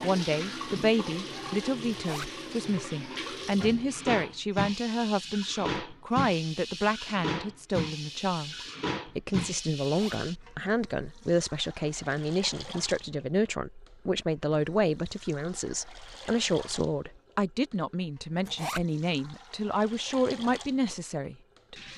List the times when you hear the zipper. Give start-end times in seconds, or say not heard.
1.9-2.4, 9.8-10.2, 18.4-18.9.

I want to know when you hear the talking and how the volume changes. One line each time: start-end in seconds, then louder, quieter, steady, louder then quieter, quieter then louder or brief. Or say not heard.
0.0-21.8 steady.